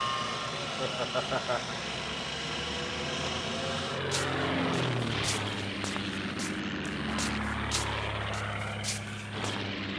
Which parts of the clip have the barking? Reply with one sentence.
The barking can't be heard in this clip.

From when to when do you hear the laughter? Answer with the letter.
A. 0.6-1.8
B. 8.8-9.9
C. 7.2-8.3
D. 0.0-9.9
A.